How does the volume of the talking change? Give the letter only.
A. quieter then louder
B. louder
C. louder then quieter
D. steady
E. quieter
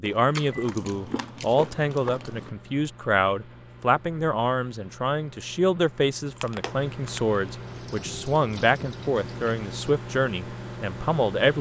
D.